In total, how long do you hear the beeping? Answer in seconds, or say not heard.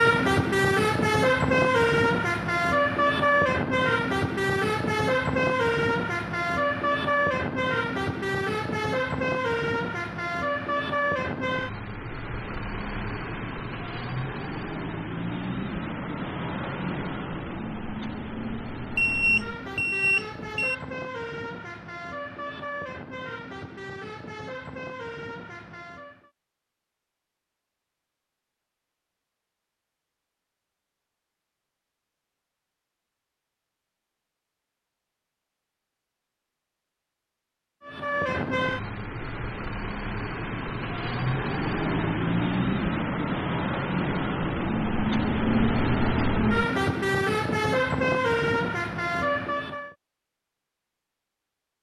2 s.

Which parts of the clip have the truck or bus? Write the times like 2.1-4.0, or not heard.
0.0-26.3, 37.8-50.0.